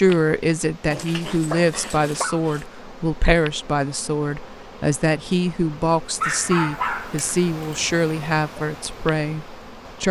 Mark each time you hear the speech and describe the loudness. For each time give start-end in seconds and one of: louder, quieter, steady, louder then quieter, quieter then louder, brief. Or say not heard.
0.0-10.0 steady.